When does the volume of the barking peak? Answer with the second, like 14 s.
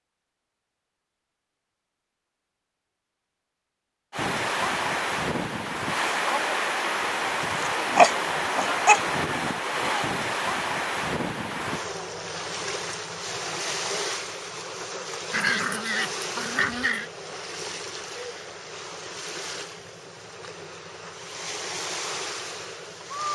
8 s.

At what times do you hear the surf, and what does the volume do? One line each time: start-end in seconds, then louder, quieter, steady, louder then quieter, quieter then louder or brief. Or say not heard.
4.1-23.3 quieter.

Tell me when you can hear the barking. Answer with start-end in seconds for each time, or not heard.
7.4-9.0, 15.3-17.1.